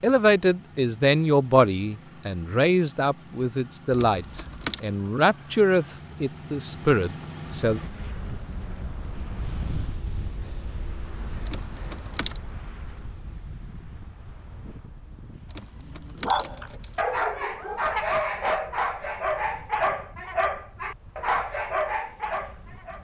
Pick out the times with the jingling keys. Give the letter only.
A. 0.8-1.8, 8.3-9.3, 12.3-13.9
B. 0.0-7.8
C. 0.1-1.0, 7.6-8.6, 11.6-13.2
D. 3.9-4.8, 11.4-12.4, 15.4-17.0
D.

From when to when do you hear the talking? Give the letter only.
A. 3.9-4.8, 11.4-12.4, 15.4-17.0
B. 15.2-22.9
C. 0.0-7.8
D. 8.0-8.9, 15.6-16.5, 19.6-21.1
C.